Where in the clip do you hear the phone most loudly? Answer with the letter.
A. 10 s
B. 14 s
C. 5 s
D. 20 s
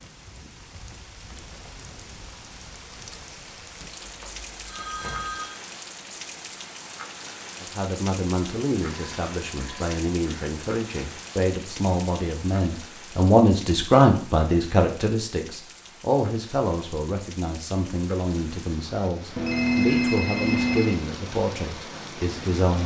D.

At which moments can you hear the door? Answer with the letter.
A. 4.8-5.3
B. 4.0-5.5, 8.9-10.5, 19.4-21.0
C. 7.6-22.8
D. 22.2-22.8
A.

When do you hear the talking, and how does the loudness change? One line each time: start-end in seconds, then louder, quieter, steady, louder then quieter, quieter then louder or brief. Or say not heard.
7.6-22.8 louder then quieter.